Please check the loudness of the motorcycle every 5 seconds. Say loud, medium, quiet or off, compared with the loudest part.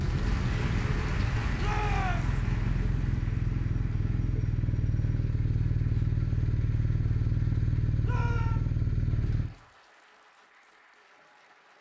loud, loud, off.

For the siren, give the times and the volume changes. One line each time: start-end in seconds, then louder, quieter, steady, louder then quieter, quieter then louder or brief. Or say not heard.
not heard.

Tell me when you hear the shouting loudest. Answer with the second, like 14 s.
2 s.